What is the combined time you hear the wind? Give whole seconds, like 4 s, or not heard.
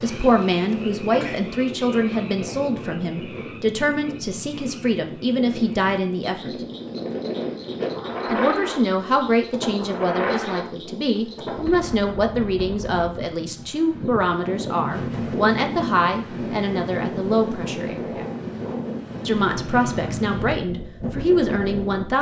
22 s.